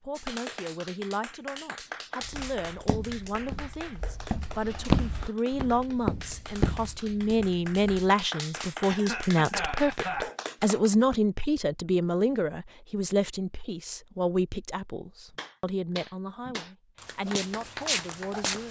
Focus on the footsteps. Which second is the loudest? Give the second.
5 s.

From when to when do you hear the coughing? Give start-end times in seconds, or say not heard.
8.8-10.3.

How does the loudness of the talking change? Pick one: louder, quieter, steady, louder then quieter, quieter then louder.
louder then quieter.